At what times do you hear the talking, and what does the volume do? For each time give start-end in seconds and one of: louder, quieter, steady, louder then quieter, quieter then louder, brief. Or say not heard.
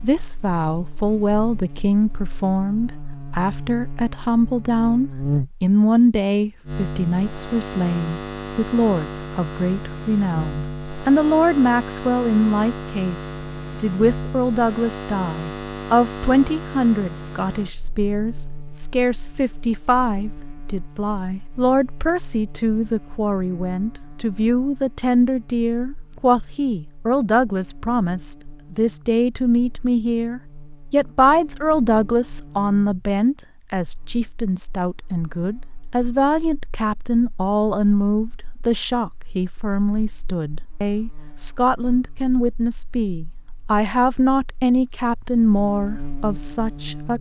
0.0-47.1 steady.